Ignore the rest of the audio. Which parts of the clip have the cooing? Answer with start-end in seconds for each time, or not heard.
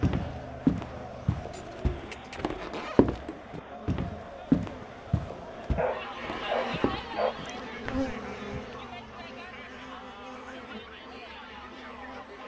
1.5-2.5.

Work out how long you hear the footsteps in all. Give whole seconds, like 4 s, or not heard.
8 s.